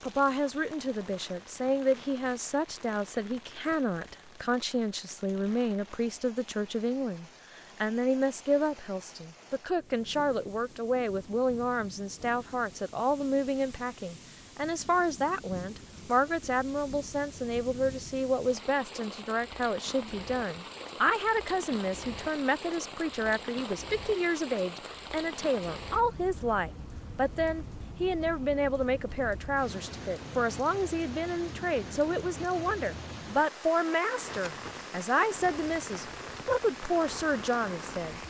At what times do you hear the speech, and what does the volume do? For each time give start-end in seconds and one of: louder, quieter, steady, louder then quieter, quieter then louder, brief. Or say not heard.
0.0-38.2 steady.